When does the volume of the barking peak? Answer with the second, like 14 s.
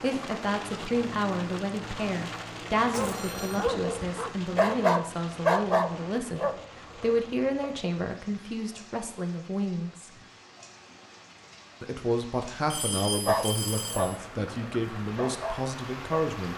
6 s.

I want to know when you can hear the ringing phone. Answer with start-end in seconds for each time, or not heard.
3.1-3.7, 12.7-14.2.